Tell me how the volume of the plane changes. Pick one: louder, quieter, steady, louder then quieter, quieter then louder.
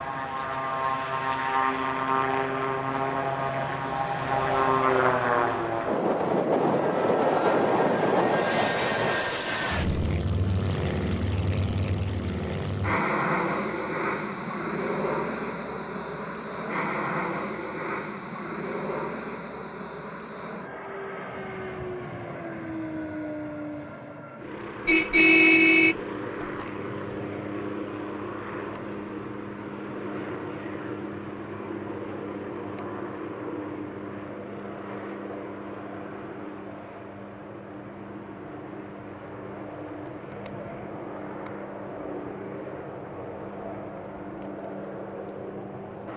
quieter.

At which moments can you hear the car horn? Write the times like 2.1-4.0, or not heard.
24.9-26.6.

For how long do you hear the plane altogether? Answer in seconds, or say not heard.
46 s.